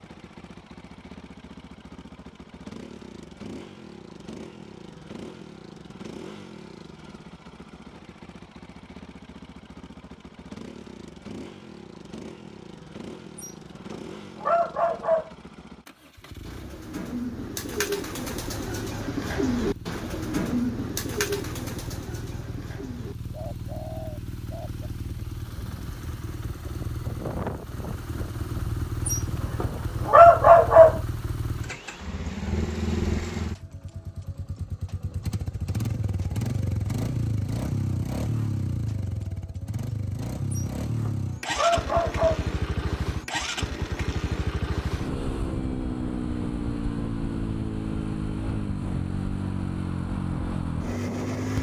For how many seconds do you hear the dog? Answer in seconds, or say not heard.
6 s.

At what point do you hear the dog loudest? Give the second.
30 s.